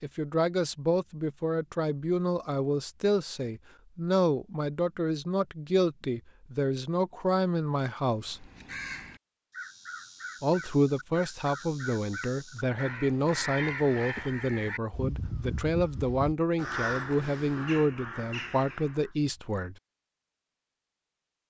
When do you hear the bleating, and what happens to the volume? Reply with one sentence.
The bleating can't be heard in this clip.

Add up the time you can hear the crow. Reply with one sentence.
The crow can be heard for 11 seconds in total.